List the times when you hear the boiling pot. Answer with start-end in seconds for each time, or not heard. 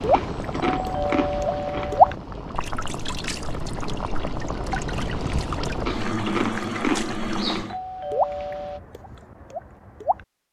0.0-7.8.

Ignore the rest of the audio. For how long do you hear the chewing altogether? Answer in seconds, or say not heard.
4 s.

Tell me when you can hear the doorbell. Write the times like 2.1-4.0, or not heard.
0.6-2.1, 7.7-8.8.